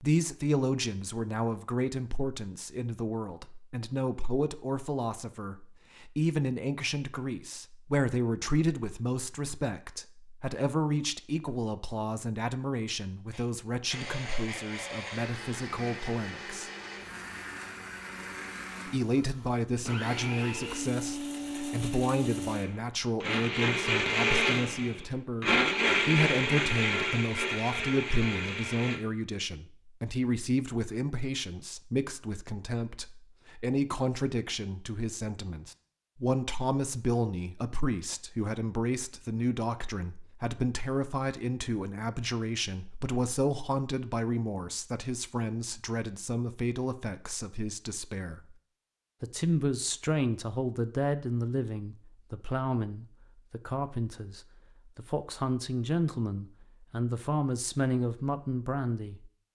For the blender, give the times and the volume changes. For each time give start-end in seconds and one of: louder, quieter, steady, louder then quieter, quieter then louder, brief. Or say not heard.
13.3-29.0 louder.